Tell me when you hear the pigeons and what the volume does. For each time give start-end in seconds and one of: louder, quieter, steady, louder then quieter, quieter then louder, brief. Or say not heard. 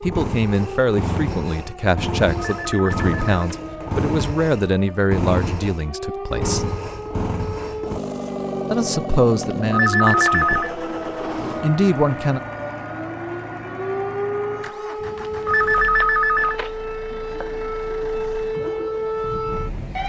not heard.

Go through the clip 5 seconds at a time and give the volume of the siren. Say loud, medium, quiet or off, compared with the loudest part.
medium, medium, loud, loud.